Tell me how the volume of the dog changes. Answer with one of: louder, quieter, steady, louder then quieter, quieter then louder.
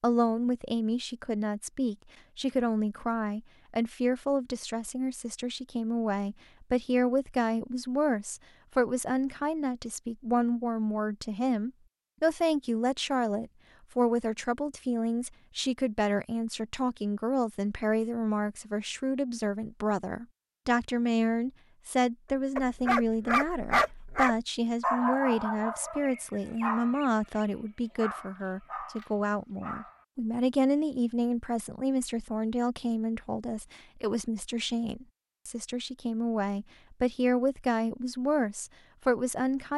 quieter.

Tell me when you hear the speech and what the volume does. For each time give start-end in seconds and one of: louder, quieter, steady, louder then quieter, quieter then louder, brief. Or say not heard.
0.0-39.7 steady.